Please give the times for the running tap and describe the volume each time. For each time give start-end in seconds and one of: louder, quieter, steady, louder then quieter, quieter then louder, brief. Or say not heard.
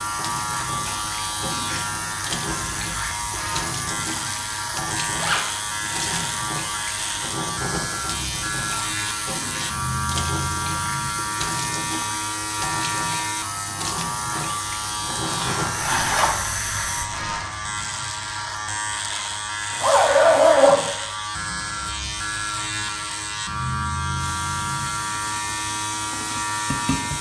0.0-17.4 steady
24.1-27.1 brief.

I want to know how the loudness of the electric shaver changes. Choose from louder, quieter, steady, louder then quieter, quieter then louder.
steady.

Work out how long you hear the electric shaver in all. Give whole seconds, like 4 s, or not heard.
27 s.